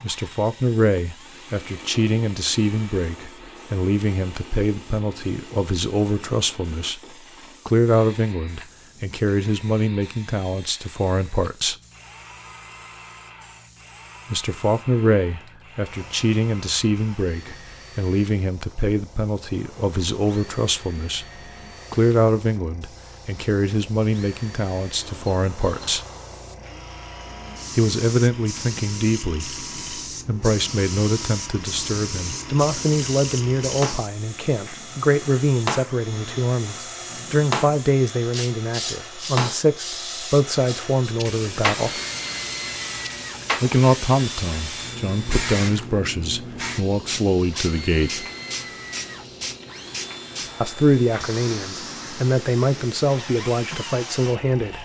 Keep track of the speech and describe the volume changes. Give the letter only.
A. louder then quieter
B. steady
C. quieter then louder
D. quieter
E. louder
B.